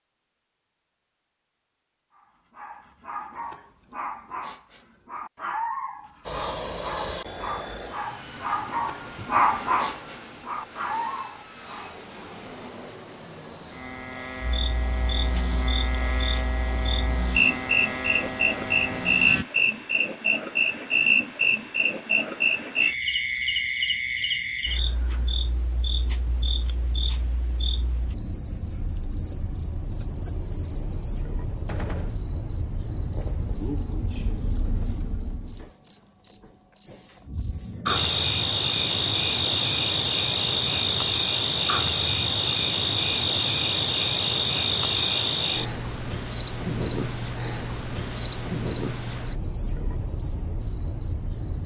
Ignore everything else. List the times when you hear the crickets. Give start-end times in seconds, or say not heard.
14.4-51.6.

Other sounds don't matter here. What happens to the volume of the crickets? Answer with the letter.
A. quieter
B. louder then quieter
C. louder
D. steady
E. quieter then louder
D.